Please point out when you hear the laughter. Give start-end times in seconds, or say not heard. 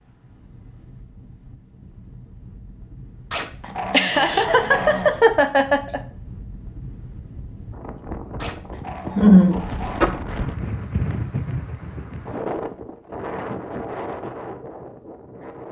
3.9-6.0, 9.2-10.1.